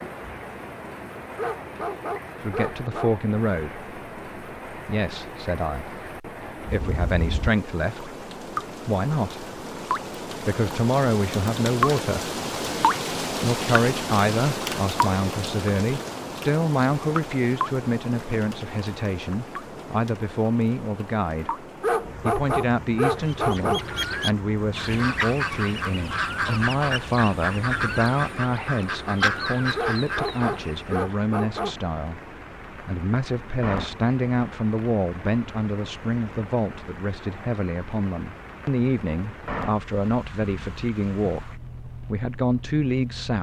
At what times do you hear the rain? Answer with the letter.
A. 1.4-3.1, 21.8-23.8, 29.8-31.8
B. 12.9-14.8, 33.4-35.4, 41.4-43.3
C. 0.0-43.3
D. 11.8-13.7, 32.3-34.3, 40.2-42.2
C.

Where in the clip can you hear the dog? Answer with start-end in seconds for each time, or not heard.
1.4-3.1, 21.8-23.8, 29.8-31.8.